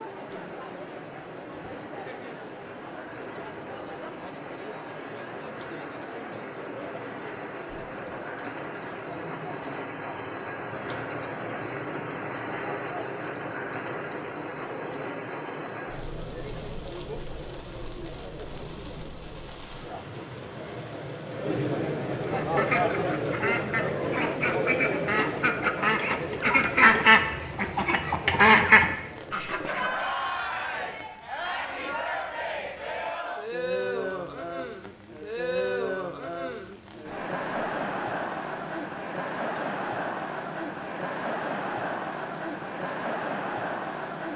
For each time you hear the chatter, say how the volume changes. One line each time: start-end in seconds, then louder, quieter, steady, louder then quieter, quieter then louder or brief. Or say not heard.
0.0-44.3 louder.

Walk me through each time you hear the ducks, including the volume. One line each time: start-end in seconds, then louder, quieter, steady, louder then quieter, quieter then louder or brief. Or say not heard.
22.2-30.1 louder.